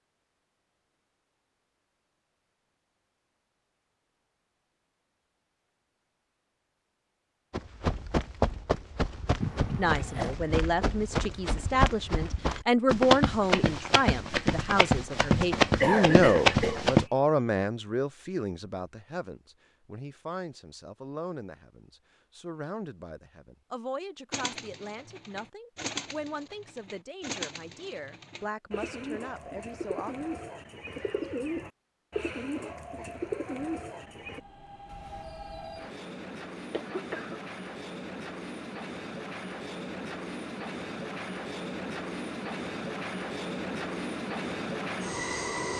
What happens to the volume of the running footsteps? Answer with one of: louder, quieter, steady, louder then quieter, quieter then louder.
louder.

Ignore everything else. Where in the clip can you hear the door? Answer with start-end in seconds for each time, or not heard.
not heard.